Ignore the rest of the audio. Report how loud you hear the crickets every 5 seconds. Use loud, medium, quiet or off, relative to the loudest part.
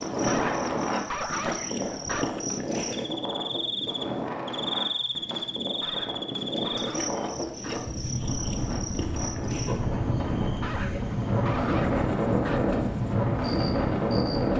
loud, loud, medium.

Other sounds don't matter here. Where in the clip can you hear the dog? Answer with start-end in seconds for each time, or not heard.
0.2-2.2, 5.8-7.8, 10.6-12.6.